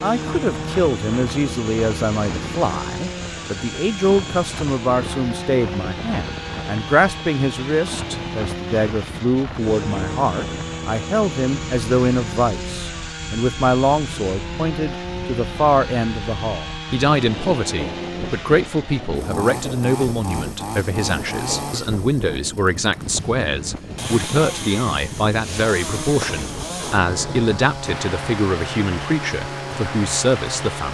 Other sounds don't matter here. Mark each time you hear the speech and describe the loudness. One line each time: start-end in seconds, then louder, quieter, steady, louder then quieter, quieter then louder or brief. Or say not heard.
0.0-30.8 steady.